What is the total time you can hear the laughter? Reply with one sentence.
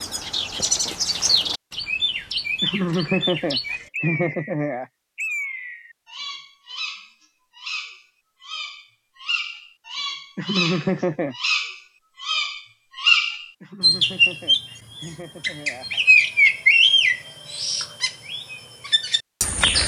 You can hear the laughter for 6 seconds altogether.